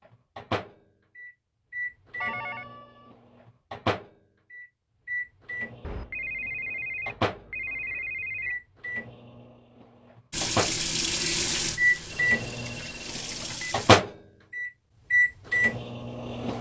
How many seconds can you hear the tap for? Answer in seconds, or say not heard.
4 s.